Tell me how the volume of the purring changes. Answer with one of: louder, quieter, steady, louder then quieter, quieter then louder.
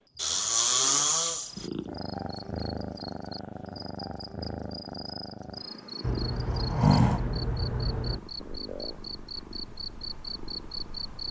quieter.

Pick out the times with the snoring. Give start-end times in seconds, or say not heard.
0.1-1.6, 6.0-8.2.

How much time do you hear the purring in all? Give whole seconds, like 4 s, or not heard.
10 s.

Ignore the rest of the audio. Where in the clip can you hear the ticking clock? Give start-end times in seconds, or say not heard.
not heard.